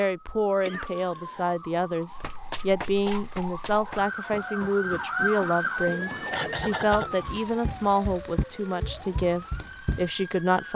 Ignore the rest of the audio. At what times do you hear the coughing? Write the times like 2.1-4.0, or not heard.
0.7-2.0, 6.3-7.2.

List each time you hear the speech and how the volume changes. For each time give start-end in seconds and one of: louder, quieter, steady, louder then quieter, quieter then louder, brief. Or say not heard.
0.0-10.7 steady.